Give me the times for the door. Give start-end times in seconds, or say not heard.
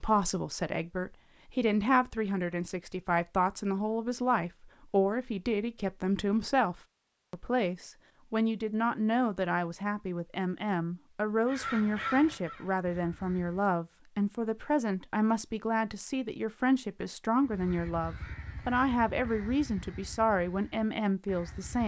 not heard.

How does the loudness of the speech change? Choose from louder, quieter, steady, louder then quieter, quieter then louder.
steady.